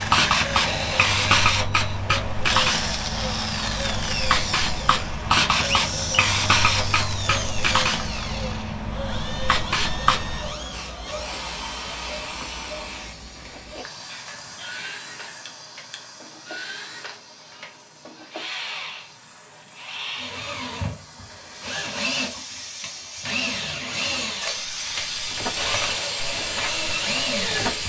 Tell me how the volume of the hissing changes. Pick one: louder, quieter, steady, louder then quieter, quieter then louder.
quieter then louder.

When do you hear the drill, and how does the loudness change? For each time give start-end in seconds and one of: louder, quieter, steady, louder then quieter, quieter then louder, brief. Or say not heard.
0.0-27.8 quieter then louder.